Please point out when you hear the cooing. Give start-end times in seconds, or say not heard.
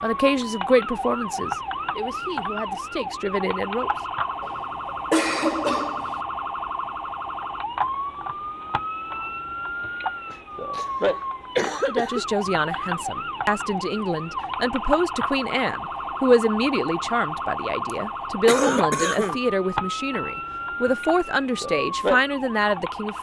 not heard.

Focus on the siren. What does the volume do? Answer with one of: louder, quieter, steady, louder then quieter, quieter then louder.
steady.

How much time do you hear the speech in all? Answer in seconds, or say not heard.
15 s.